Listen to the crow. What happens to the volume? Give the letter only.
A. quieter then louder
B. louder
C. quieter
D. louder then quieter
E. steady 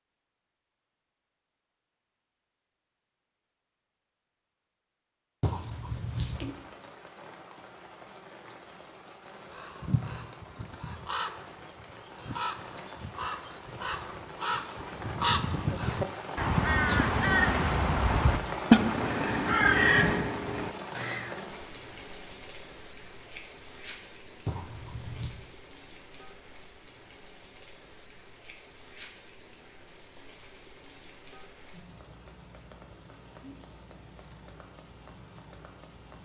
B.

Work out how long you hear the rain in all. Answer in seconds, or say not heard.
30 s.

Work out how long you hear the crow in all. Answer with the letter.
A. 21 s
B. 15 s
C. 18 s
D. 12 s
D.